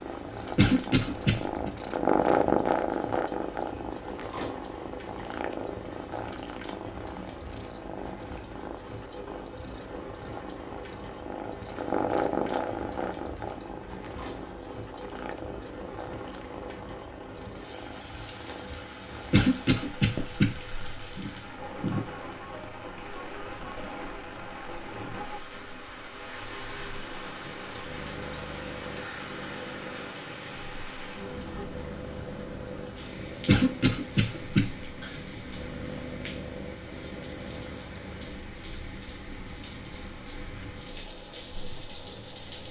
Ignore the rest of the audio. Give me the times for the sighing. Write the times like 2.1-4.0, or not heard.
21.1-22.1.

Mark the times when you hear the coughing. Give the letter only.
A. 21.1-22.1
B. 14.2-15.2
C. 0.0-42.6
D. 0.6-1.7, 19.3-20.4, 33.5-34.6
D.